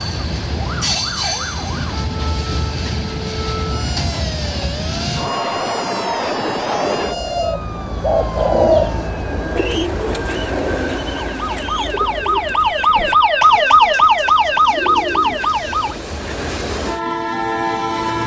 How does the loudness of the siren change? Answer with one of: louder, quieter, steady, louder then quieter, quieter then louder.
louder.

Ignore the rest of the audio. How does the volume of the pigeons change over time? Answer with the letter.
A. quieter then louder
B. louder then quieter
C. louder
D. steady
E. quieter
E.